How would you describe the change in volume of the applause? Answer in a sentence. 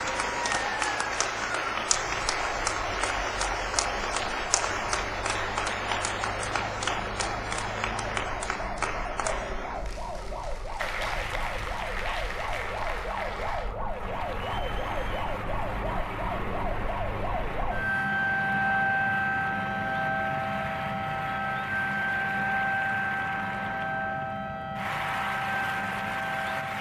The volume of the applause goes down.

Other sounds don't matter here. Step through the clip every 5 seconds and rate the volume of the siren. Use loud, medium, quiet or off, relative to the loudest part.
medium, medium, medium, loud, loud, loud.